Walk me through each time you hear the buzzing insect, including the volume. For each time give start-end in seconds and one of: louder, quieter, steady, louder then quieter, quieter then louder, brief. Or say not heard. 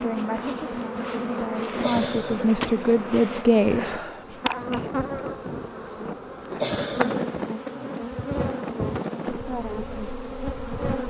0.0-11.0 steady.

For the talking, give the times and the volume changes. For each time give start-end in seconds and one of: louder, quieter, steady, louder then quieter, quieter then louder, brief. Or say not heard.
0.0-4.3 louder.